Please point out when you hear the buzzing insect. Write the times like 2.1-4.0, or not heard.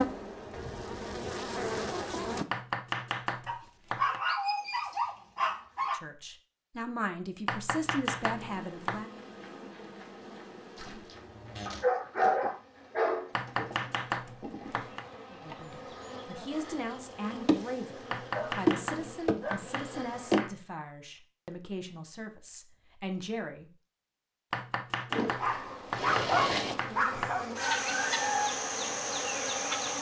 0.0-2.5, 8.2-20.4, 25.1-29.9.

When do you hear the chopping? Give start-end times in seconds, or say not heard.
2.5-4.2, 7.5-9.0, 13.3-15.1, 18.1-20.6, 24.5-27.4.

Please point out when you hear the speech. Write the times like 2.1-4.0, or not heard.
5.9-9.1, 15.3-23.7.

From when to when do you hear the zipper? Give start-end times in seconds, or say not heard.
not heard.